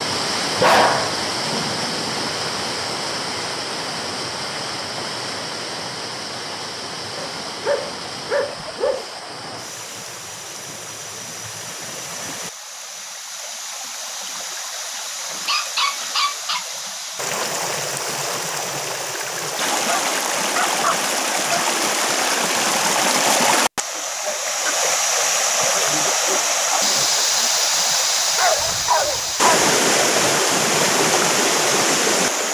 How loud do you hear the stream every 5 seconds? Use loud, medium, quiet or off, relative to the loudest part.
medium, quiet, quiet, medium, loud, loud, loud.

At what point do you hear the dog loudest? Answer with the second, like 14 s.
1 s.